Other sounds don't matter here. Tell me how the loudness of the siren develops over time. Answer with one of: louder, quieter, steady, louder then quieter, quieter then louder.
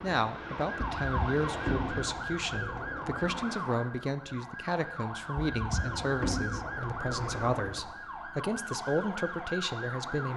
steady.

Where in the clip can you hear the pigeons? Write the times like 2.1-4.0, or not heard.
0.8-3.5, 5.3-7.8.